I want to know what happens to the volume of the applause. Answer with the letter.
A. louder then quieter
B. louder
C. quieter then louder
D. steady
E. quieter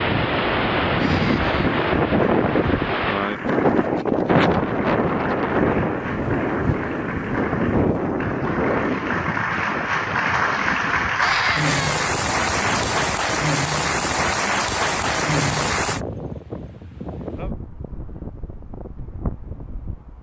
B.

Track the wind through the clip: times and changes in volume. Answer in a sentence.
You can hear the wind from 0.0 to 20.1 s, getting quieter.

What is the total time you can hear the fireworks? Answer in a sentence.
You can't hear the fireworks here.